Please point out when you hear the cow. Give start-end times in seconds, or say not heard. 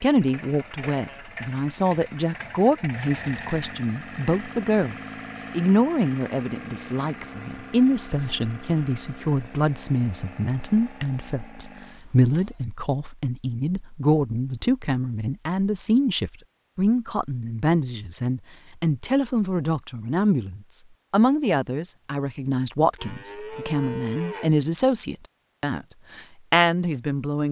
22.9-24.6.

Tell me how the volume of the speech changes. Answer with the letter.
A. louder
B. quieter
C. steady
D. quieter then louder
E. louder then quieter
C.